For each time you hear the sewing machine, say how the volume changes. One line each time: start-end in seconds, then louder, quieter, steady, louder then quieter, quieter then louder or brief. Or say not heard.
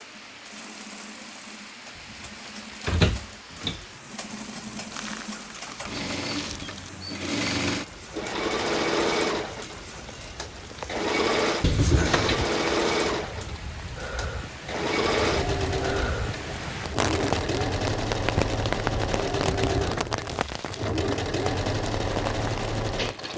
0.0-23.3 louder.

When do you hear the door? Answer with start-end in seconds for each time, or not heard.
2.9-3.8, 11.6-12.5, 19.6-20.2.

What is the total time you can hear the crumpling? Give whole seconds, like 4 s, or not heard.
3 s.